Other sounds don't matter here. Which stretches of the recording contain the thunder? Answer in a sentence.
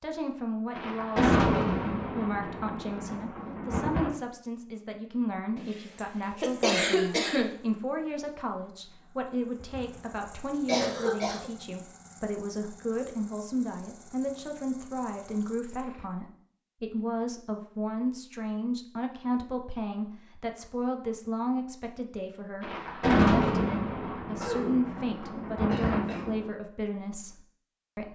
The thunder can be heard from 0.8 to 4.1 s and from 22.6 to 26.5 s.